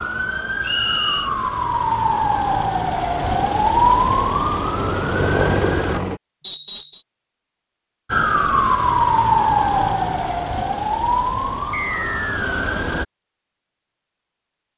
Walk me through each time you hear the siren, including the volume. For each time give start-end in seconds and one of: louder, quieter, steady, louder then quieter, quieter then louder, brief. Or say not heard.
0.0-6.0 louder then quieter
8.1-13.1 quieter.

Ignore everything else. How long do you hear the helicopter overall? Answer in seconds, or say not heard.
3 s.